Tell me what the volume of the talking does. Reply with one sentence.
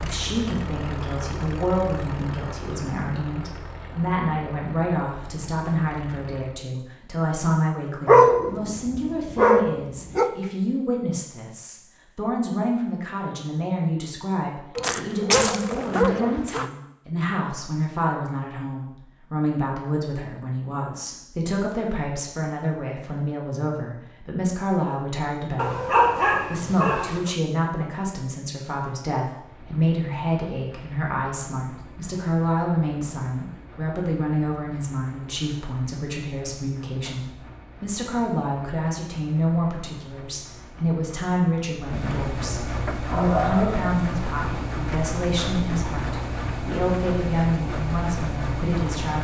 The volume of the talking stays about the same.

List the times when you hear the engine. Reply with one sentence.
The engine can be heard from 0.0 to 6.7 s and from 29.4 to 49.1 s.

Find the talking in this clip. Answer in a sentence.
You can hear the talking from 0.0 to 49.1 s.